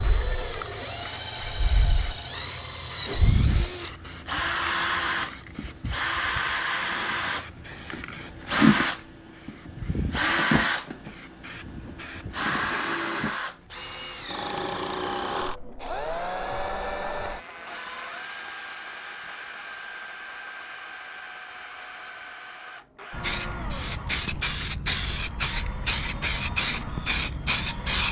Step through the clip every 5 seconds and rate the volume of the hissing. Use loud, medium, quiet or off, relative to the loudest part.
quiet, quiet, quiet, off, loud, loud.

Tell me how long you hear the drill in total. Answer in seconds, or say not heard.
28 s.